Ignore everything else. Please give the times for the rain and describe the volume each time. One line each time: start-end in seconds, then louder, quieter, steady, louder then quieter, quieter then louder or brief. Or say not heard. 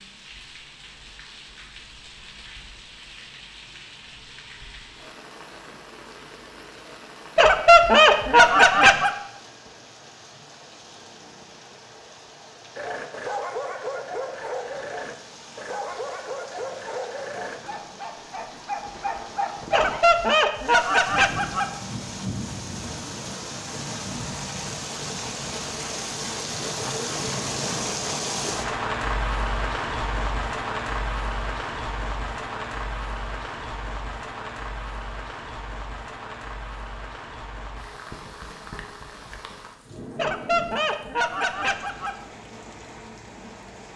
0.0-43.9 louder then quieter.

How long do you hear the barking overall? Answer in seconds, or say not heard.
7 s.